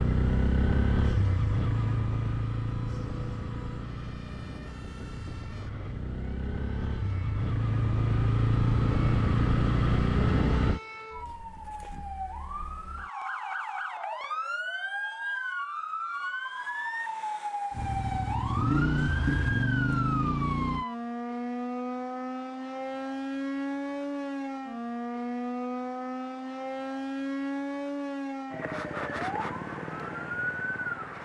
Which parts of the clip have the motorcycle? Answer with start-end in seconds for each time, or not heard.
0.0-10.8, 17.7-20.9.